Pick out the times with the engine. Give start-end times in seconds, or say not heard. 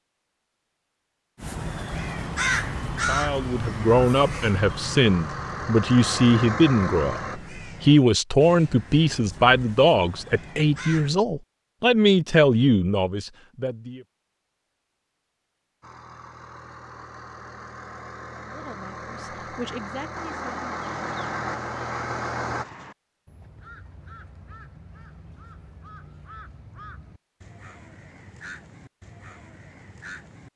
2.0-7.4, 15.8-22.6.